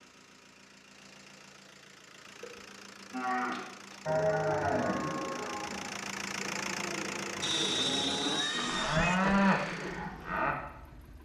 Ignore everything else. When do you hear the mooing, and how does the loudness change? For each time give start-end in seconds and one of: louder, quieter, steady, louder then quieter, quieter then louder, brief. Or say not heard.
3.1-10.6 quieter then louder.